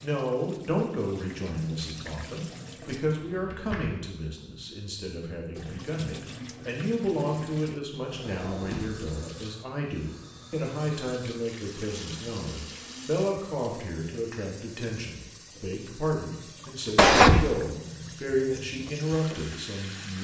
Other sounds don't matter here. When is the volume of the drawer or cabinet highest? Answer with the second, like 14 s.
17 s.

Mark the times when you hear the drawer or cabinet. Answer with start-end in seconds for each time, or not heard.
3.1-4.0, 8.1-9.1, 16.9-17.5.